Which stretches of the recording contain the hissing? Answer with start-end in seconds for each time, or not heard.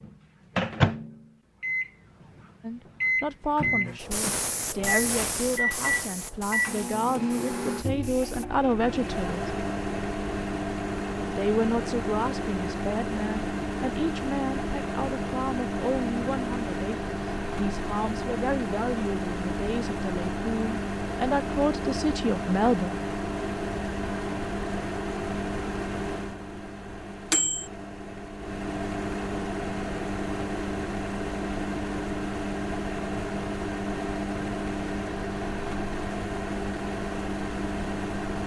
4.0-8.4.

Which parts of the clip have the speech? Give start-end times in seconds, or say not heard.
2.6-9.4, 11.3-22.9.